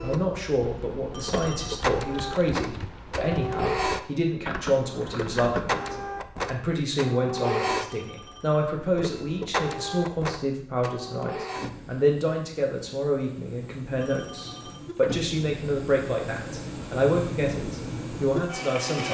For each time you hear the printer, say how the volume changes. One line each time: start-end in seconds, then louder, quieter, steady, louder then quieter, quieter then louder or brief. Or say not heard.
0.0-19.0 quieter then louder.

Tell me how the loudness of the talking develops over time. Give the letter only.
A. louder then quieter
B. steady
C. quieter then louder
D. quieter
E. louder
B.